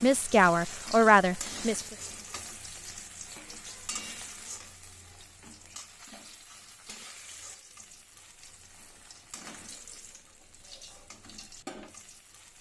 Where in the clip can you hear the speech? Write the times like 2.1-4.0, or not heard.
0.0-1.9.